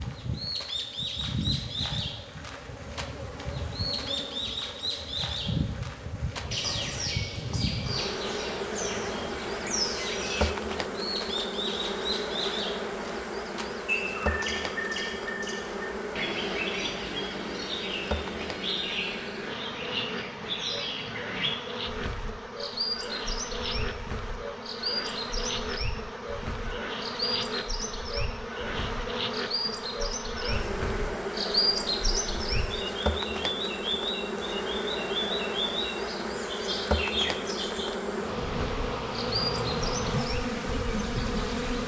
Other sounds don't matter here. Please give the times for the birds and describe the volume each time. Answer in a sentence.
You can hear the birds from 0.0 to 41.8 s, at a steady volume.